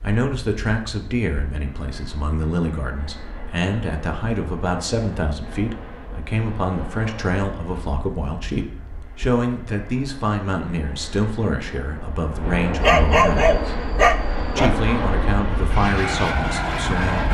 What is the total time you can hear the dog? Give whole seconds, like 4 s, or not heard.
2 s.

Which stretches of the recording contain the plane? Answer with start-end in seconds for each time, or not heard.
0.0-17.2.